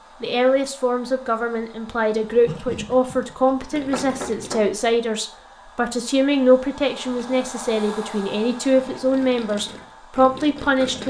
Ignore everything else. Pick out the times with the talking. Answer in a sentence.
The talking can be heard from 0.2 to 11.0 s.